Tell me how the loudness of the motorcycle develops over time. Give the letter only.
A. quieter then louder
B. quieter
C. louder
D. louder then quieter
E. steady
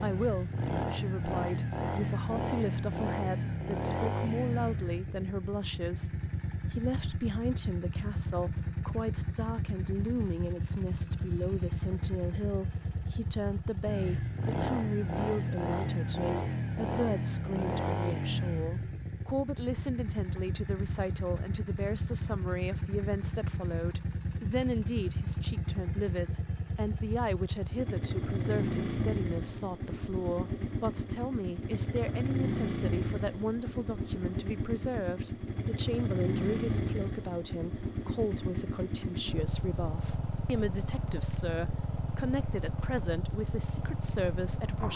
E.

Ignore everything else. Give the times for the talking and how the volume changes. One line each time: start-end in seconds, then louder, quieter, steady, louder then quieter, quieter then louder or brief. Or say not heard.
0.0-6.1 steady
6.7-44.9 steady.